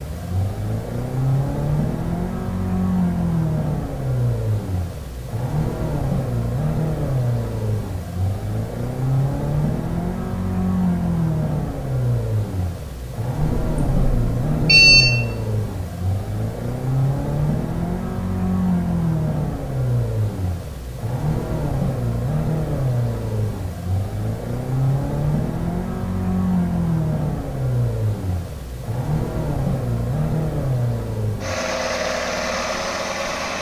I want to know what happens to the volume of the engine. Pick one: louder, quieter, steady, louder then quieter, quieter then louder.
steady.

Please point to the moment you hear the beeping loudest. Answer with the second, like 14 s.
15 s.